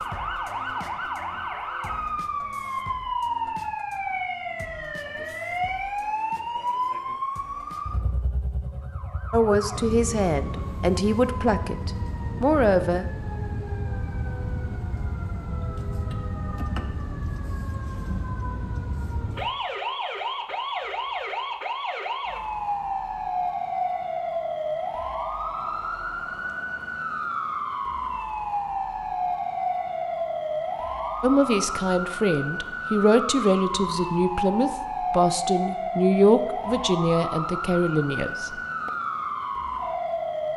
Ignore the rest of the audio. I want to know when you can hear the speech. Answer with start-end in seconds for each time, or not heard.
9.3-13.1, 31.2-38.9.